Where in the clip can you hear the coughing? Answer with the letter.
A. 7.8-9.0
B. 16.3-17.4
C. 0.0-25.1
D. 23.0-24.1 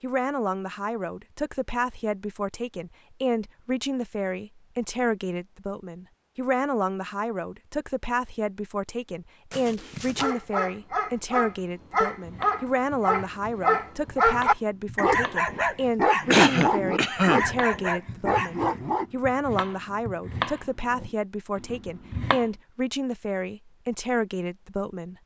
B.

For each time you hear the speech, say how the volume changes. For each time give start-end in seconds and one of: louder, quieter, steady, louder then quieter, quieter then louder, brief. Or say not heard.
0.0-25.1 steady.